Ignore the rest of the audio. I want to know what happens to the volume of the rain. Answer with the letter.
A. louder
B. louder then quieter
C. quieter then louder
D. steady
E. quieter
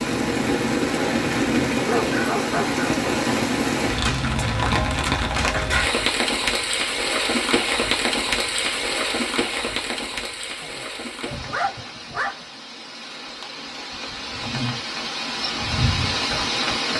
C.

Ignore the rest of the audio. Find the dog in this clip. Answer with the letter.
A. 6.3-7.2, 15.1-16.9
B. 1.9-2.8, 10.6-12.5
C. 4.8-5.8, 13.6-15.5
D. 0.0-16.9
B.